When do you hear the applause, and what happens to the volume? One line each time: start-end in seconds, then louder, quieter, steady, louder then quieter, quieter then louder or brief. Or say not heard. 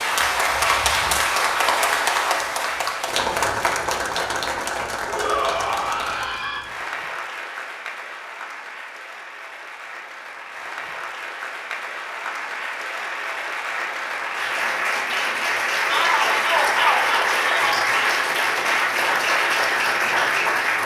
0.0-20.8 quieter then louder.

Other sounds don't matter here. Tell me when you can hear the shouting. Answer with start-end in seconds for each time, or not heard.
5.0-6.6, 15.8-17.9.